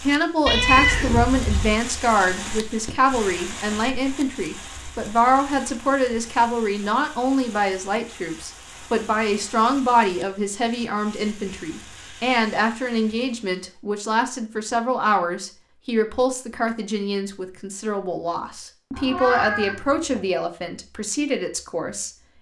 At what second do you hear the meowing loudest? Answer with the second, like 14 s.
1 s.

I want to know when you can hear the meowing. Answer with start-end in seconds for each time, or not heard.
0.5-1.8, 18.9-20.2.